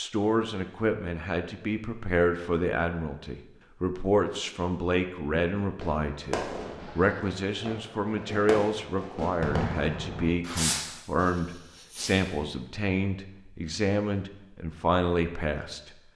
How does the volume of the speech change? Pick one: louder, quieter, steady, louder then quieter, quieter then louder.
steady.